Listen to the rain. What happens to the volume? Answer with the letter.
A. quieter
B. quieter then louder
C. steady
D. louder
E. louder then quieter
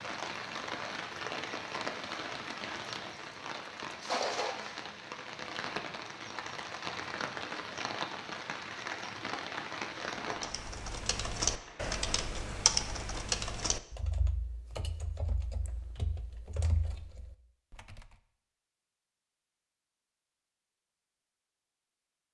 A.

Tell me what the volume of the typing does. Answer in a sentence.
The volume of the typing goes down.